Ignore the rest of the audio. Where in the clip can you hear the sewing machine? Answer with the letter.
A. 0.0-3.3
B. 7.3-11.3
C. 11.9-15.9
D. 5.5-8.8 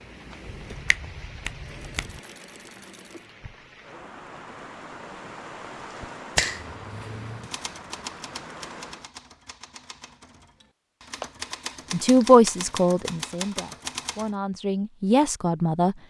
A.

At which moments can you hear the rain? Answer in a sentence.
The rain can be heard from 0.0 to 9.1 s.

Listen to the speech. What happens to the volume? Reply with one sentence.
The loudness of the speech goes down, then up.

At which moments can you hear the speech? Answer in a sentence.
The speech can be heard from 11.9 to 15.9 s.